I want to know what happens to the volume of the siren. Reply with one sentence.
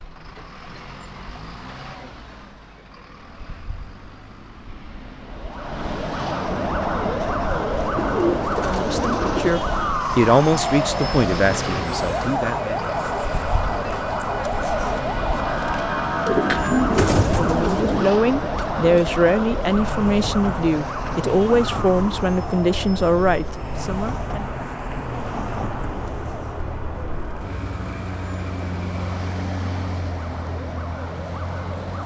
The volume of the siren goes down.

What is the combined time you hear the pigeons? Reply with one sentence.
You can hear the pigeons for 3 seconds altogether.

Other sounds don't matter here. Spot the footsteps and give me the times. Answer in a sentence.
You can't hear the footsteps here.